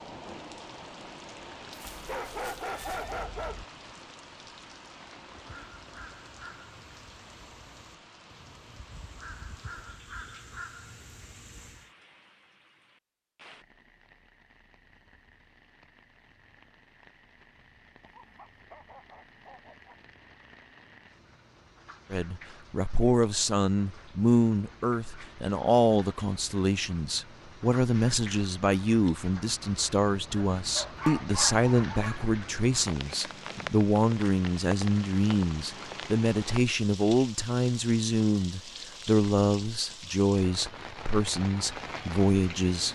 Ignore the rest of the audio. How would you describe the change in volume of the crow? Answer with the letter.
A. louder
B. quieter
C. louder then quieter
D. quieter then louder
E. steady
D.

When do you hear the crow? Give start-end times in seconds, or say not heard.
5.3-11.9.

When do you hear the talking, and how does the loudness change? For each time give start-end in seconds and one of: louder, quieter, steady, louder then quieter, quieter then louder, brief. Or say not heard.
22.1-42.8 steady.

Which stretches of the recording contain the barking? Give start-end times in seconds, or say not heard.
1.9-3.6, 18.0-19.9, 30.4-32.2.